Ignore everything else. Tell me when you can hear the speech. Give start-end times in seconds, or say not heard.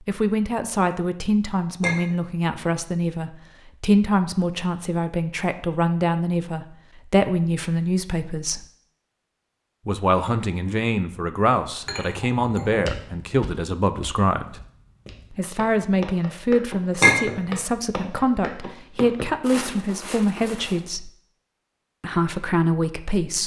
0.1-8.7, 9.8-14.6, 15.3-21.1, 22.0-23.4.